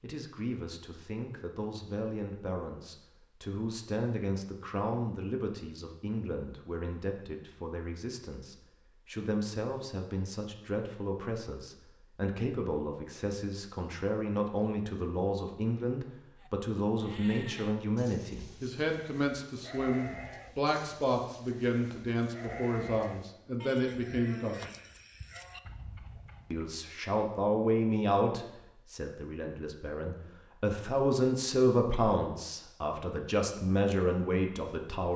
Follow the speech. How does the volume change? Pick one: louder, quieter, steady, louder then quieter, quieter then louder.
louder.